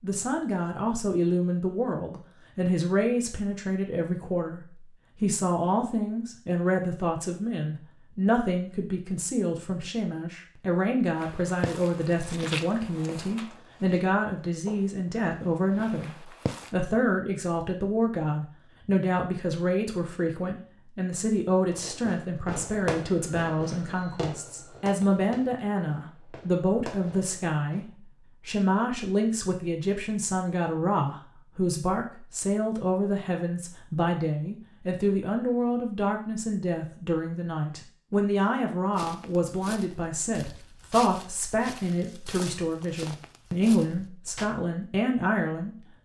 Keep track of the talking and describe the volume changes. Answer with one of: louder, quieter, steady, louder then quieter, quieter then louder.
steady.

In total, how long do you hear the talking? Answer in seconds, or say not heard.
46 s.